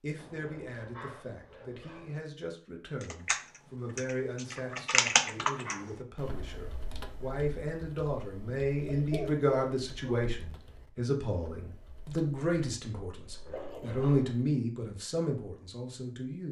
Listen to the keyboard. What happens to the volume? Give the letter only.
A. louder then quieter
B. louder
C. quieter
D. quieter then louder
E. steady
C.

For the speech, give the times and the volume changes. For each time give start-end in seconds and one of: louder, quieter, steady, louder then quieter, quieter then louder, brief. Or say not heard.
0.0-16.4 louder.